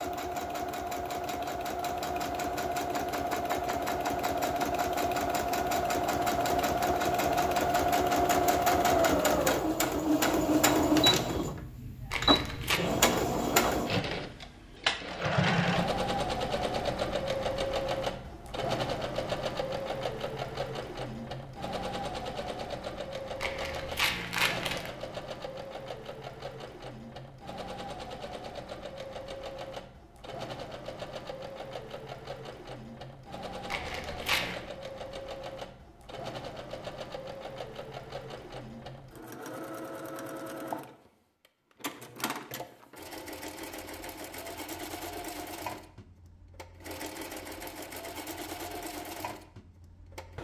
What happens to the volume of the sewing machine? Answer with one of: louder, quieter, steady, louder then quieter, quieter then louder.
quieter.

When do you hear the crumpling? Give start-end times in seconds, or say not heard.
12.1-12.8, 23.4-24.9, 33.7-34.6.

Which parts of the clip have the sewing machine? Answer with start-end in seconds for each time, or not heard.
0.0-50.4.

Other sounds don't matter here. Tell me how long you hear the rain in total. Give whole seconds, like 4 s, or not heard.
not heard.